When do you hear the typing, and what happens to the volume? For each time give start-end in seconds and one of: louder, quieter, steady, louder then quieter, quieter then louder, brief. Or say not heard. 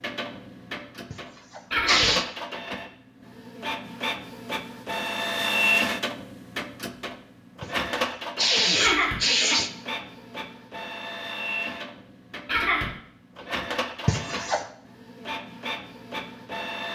not heard.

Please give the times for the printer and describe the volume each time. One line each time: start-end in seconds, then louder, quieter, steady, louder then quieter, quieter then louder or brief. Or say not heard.
0.0-16.8 louder then quieter.